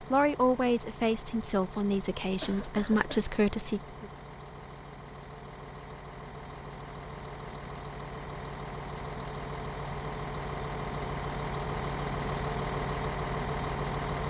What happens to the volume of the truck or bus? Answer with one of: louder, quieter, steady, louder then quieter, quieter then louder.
louder.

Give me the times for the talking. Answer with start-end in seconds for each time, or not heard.
0.0-4.1.